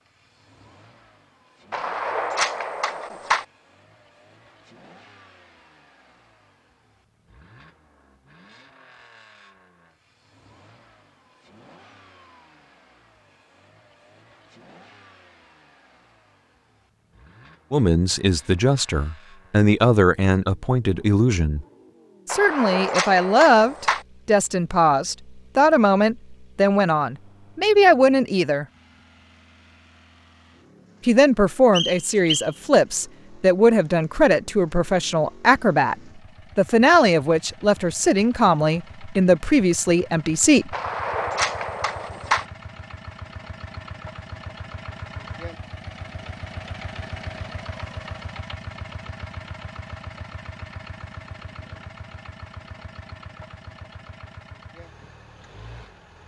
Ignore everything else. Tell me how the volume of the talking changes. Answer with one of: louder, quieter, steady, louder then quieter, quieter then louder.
steady.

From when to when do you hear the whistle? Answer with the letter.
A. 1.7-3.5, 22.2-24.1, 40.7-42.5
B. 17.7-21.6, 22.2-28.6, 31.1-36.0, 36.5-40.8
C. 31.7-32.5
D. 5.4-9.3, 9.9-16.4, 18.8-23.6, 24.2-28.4
C.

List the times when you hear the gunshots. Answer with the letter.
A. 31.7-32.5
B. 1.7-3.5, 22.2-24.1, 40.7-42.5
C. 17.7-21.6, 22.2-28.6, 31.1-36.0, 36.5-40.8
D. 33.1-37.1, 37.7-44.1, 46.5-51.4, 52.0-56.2
B.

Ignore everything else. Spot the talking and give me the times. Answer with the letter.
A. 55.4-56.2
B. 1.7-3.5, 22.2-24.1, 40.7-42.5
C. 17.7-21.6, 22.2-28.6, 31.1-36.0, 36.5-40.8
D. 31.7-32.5
C.